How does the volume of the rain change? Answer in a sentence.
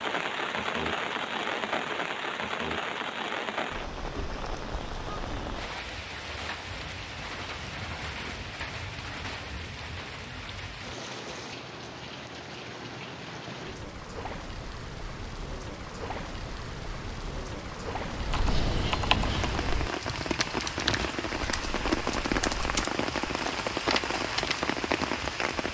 The loudness of the rain goes down, then up.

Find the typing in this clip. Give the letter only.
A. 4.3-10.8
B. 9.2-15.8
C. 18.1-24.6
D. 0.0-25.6
C.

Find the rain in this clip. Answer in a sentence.
You can hear the rain from 0.0 to 25.6 s.